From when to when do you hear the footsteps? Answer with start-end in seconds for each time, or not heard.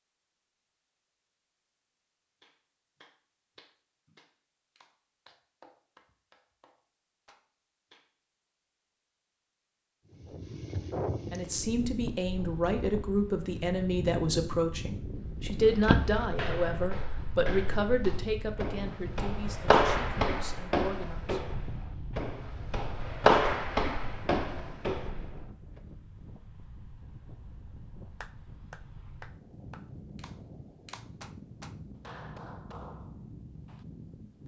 15.5-25.4.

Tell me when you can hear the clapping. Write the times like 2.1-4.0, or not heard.
2.4-8.1, 28.2-33.9.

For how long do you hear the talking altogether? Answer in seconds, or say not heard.
10 s.